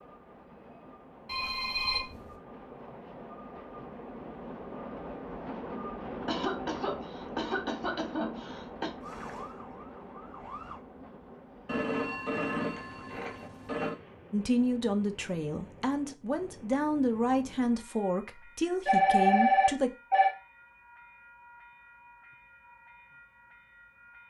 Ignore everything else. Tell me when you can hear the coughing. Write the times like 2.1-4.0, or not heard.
6.2-8.9.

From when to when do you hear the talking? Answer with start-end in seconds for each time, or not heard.
14.3-19.9.